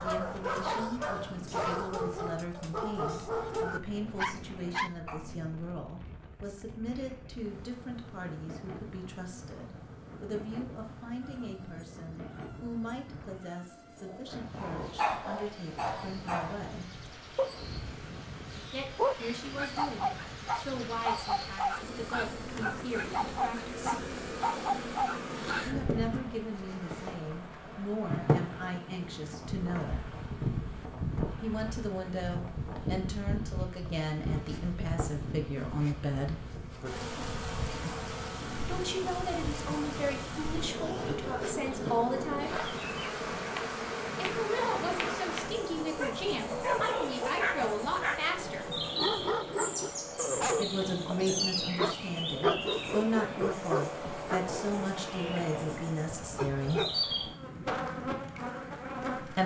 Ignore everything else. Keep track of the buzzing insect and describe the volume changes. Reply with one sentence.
The loudness of the buzzing insect goes up.